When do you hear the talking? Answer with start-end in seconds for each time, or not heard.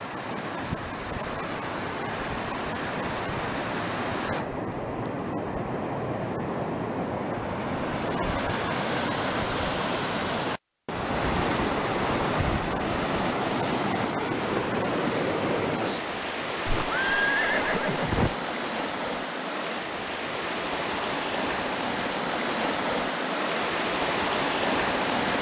not heard.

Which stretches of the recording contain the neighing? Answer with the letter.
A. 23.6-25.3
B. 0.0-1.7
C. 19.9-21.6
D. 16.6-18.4
D.